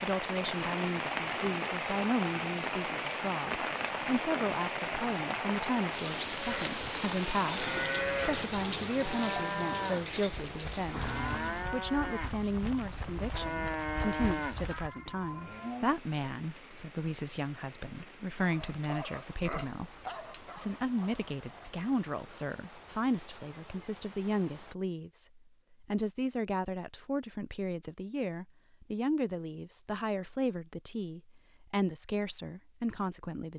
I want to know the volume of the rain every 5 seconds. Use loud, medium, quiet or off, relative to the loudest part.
loud, loud, medium, quiet, quiet, off, off.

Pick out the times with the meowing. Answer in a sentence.
The meowing can be heard from 14.7 to 15.8 s.